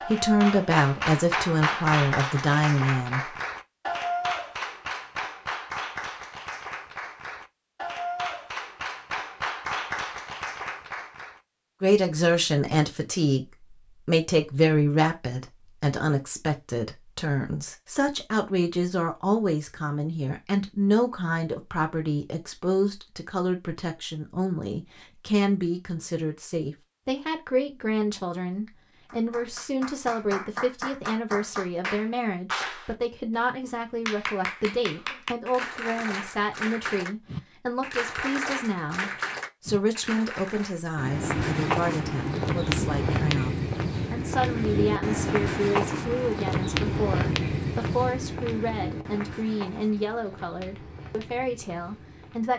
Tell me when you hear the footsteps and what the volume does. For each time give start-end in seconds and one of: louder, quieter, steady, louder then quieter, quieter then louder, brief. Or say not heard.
41.0-52.5 quieter.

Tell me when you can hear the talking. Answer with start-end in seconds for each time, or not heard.
0.0-3.4, 11.8-52.5.